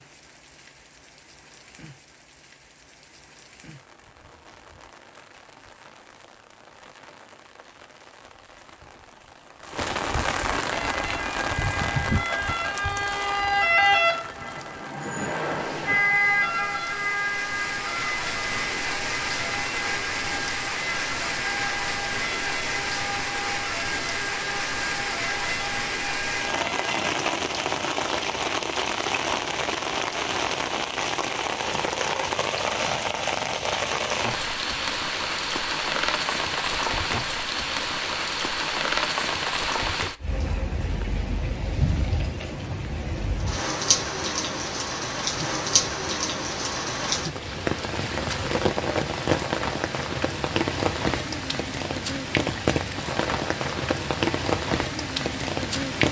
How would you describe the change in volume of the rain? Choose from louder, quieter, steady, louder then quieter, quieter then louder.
louder.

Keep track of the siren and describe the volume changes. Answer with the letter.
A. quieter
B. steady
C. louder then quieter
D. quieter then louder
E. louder
A.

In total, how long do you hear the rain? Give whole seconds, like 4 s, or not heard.
56 s.